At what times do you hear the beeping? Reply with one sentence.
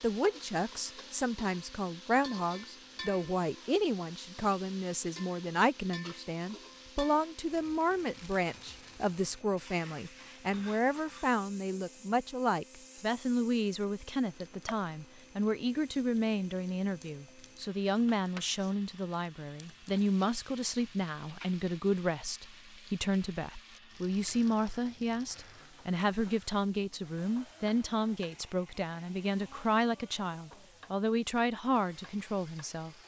You can't hear the beeping here.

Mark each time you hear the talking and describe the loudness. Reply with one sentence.
You can hear the talking from 0.0 to 33.0 s, at a steady volume.